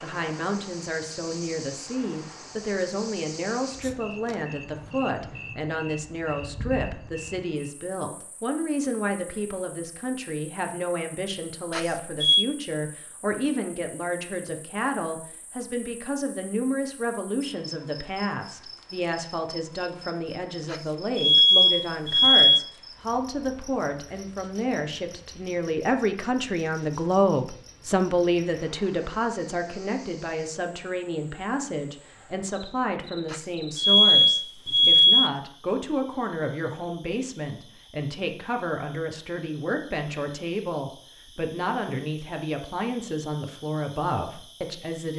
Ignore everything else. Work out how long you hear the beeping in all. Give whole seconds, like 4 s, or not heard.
5 s.